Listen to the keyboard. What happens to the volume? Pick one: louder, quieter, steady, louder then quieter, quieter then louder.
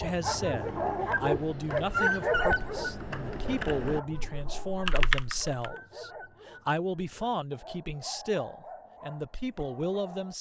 louder.